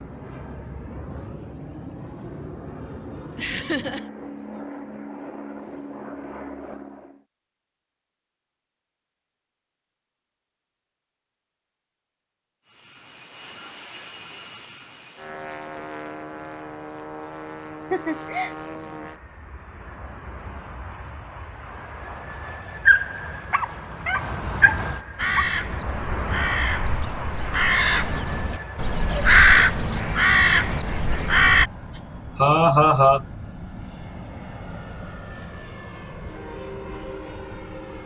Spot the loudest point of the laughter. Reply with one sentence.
The loudest moment of the laughter is at 33 seconds.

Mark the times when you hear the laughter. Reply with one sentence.
The laughter can be heard from 3.4 to 4.0 s, from 16.5 to 18.6 s and from 31.8 to 33.2 s.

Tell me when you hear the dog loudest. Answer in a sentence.
The volume of the dog peaks at 23 seconds.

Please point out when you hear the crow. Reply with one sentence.
The crow can be heard from 25.1 to 31.7 s.